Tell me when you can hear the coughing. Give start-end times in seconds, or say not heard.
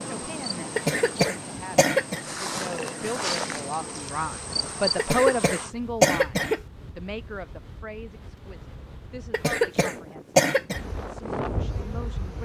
0.8-2.2, 5.0-6.6, 9.3-10.8.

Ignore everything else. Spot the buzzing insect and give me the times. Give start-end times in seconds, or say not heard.
0.0-5.7, 10.8-12.4.